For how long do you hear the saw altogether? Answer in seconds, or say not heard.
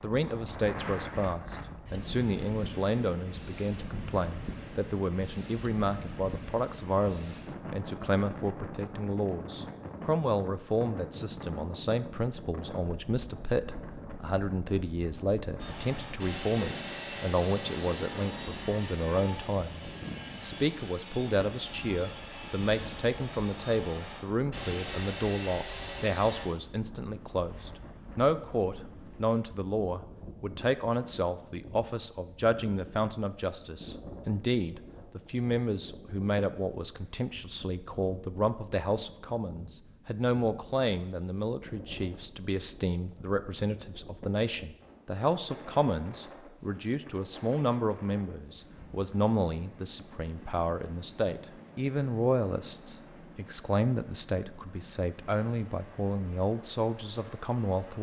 11 s.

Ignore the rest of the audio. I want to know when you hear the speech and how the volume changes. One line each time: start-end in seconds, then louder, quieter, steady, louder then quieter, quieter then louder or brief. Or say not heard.
0.0-57.9 steady.